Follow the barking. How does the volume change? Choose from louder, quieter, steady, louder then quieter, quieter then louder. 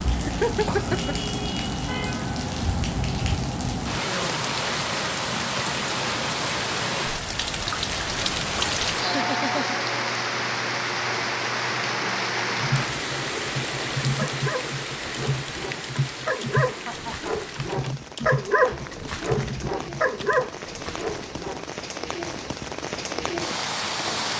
louder.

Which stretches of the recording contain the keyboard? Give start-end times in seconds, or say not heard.
12.6-20.4.